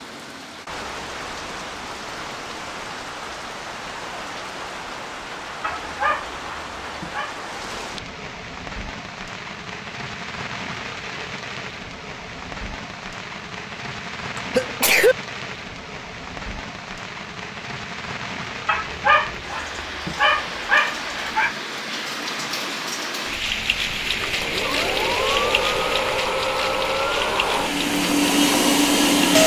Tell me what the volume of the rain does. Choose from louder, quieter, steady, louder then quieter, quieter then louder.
louder.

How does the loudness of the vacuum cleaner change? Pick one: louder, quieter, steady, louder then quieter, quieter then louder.
louder.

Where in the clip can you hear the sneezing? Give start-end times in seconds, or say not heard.
14.3-15.2.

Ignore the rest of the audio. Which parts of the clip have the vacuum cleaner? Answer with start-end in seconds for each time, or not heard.
24.0-29.4.